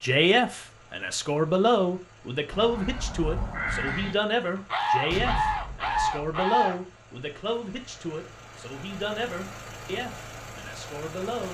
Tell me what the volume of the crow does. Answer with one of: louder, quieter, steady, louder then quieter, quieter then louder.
louder.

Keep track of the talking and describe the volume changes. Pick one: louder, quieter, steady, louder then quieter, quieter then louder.
quieter.